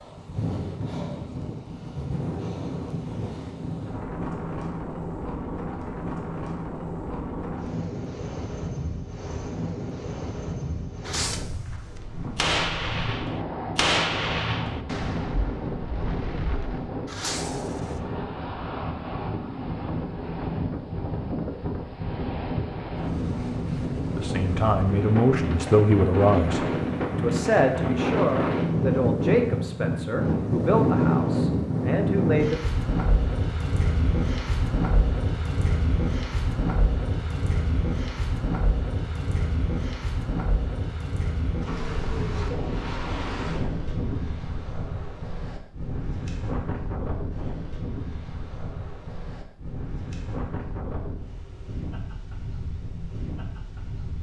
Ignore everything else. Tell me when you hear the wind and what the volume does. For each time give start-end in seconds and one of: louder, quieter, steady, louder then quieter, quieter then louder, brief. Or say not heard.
0.0-54.1 louder then quieter.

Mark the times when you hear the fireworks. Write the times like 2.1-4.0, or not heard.
11.1-11.6, 12.3-18.0.